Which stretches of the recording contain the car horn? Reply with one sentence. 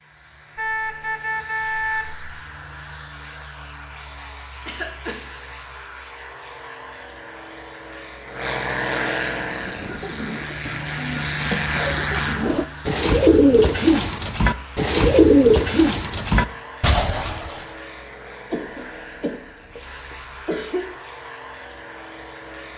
The car horn can be heard from 0.6 to 2.2 s.